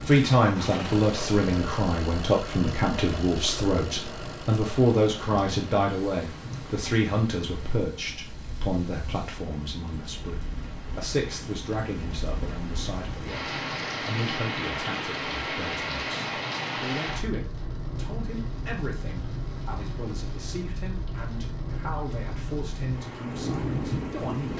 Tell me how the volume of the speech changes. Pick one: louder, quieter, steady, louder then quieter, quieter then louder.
quieter.